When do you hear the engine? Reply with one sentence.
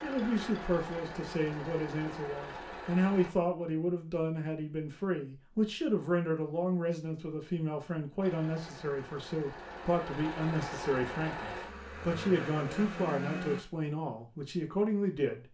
You can hear the engine from 0.0 to 3.3 s and from 8.2 to 13.6 s.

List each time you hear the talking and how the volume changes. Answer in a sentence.
You can hear the talking from 0.0 to 15.4 s, at a steady volume.